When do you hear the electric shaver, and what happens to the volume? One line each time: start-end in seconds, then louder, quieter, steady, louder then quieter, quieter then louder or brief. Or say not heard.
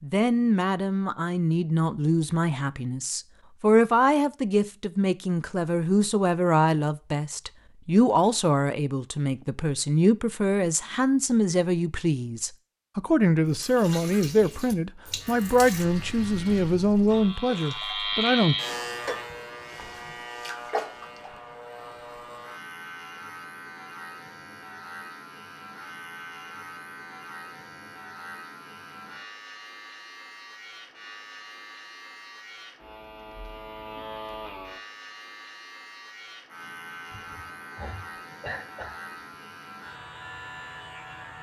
15.2-41.3 quieter.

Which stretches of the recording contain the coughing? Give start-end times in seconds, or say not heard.
37.1-39.1.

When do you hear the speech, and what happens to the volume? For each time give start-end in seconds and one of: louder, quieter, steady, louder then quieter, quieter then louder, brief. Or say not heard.
0.0-18.6 steady.